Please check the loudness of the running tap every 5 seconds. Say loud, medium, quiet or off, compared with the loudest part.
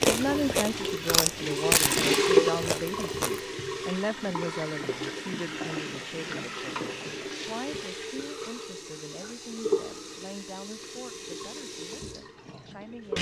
loud, medium, medium.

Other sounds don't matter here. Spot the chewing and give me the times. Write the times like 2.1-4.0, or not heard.
0.0-3.4.